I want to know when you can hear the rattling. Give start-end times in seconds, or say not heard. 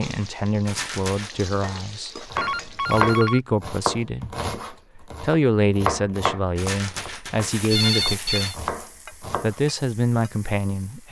0.7-1.3, 6.5-8.6.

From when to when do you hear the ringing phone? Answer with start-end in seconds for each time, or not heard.
2.4-3.4, 7.7-8.6.